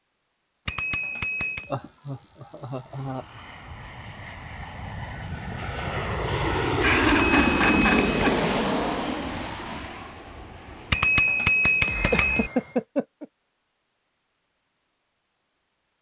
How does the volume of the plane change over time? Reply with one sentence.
The volume of the plane goes up, then down.